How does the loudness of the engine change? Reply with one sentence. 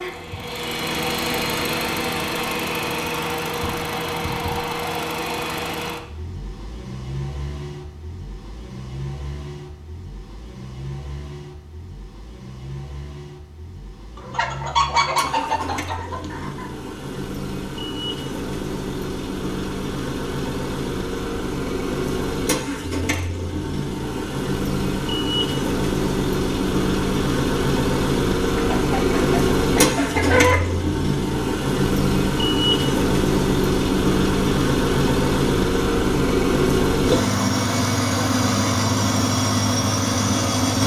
The loudness of the engine goes down, then up.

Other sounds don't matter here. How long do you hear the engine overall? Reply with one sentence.
The engine can be heard for 41 seconds in total.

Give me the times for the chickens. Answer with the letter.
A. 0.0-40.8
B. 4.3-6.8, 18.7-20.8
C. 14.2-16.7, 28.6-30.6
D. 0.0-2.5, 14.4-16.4
C.